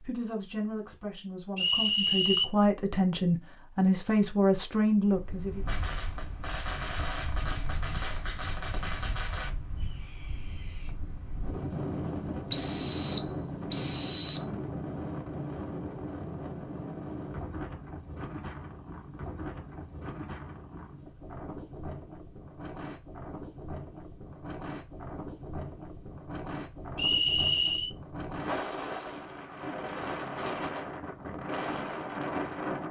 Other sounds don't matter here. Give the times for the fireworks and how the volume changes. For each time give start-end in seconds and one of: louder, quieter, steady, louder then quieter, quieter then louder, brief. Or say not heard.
5.7-10.9 steady.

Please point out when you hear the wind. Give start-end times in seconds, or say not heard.
5.0-32.8.